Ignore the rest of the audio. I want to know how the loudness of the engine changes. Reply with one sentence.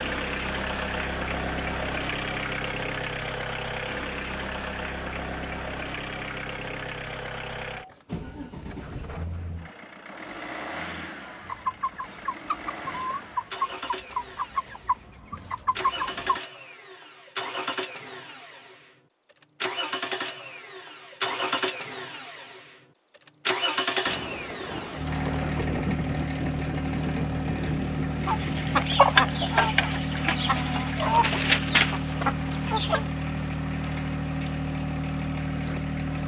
The volume of the engine goes down, then up.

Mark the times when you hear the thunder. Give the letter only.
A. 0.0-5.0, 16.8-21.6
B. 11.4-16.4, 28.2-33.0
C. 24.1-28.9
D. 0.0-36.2
C.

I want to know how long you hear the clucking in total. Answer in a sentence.
The clucking can be heard for 10 seconds in total.